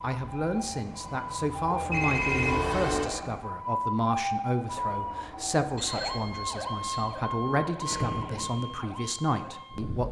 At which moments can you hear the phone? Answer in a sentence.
The phone can be heard from 1.9 to 3.0 s and from 5.8 to 7.1 s.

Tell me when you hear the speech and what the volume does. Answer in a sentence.
You can hear the speech from 0.0 to 10.0 s, at a steady volume.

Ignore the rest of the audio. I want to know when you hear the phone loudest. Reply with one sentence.
The volume of the phone peaks at 2 seconds.